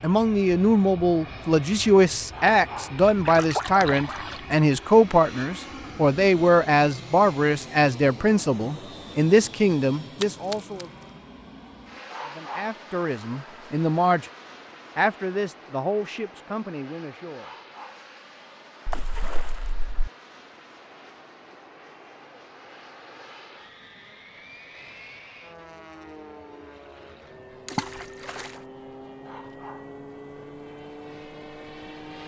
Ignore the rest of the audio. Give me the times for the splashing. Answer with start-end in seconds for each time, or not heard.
3.2-4.4, 10.2-10.8, 18.9-20.1, 27.6-28.6.